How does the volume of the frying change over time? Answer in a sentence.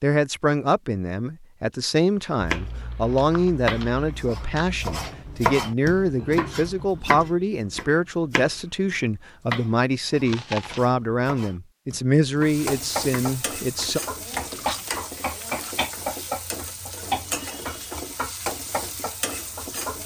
The loudness of the frying stays about the same.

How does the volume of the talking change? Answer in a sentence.
The volume of the talking stays about the same.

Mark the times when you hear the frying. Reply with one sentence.
You can hear the frying from 12.4 to 20.0 s.